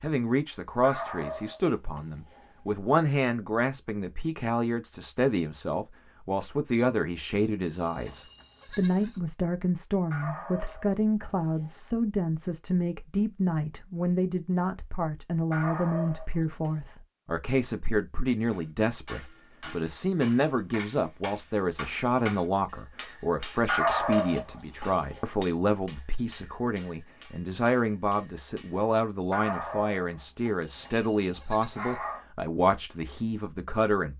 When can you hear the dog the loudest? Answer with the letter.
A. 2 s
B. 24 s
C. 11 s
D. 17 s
B.